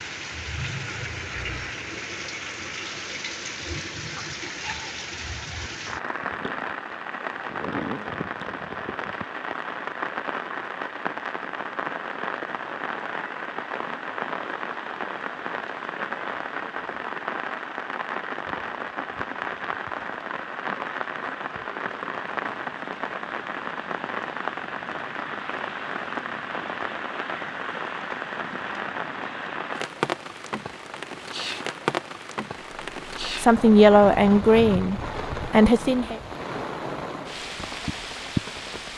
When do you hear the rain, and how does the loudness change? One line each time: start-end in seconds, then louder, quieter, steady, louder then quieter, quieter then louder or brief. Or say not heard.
0.0-38.9 steady.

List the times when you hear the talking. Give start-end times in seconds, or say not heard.
33.2-36.1.